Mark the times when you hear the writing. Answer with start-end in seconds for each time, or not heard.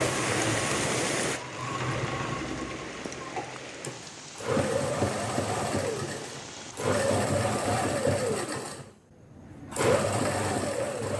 not heard.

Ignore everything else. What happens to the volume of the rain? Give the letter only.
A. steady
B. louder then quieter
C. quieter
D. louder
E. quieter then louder
C.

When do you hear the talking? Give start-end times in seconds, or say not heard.
not heard.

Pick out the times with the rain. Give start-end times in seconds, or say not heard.
0.0-7.0.